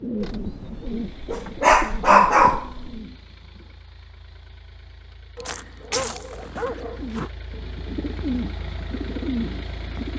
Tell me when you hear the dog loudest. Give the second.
2 s.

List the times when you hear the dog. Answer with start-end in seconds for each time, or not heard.
0.2-3.0, 5.3-7.3.